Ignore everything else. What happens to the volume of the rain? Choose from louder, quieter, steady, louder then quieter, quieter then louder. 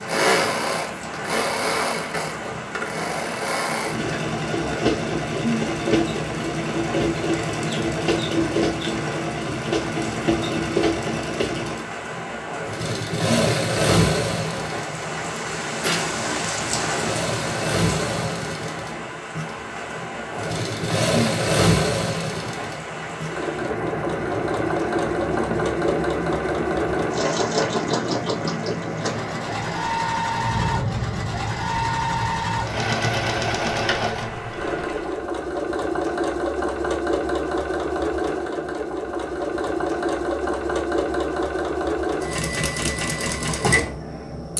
steady.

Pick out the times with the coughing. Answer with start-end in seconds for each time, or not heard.
not heard.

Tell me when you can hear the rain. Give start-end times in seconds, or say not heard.
0.0-35.3.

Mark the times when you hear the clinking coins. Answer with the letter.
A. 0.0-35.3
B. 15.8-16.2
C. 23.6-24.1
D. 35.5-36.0
B.